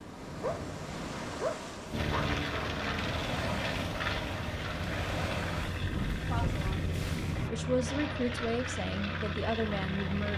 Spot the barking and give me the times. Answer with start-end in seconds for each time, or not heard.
0.4-2.4.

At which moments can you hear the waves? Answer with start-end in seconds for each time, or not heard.
0.0-7.5.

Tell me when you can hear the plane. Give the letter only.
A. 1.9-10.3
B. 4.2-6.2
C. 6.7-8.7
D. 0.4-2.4
A.